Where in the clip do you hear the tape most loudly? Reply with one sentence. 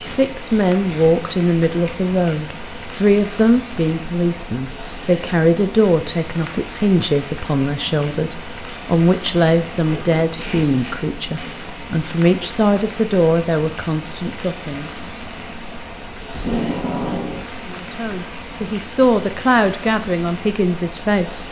The loudest moment of the tape is at 17 seconds.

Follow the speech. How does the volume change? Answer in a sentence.
The loudness of the speech stays about the same.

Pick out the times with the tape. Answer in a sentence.
You can hear the tape from 0.1 to 1.1 s, from 9.7 to 11.6 s and from 16.3 to 17.4 s.